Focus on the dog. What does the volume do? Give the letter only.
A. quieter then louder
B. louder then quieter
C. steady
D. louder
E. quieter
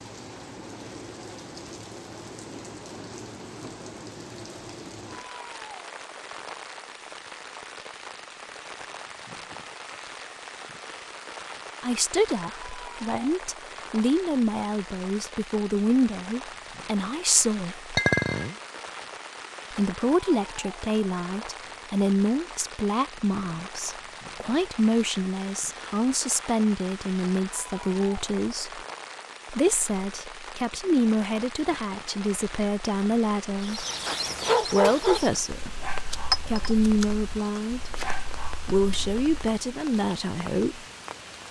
A.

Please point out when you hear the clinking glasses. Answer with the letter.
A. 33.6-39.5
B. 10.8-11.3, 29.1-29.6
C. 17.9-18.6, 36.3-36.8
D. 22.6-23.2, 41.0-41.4
C.